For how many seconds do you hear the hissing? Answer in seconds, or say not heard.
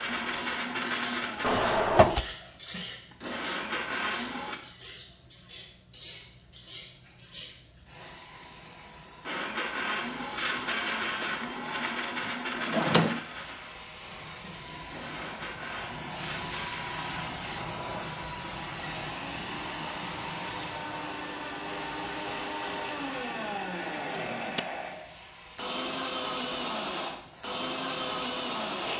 29 s.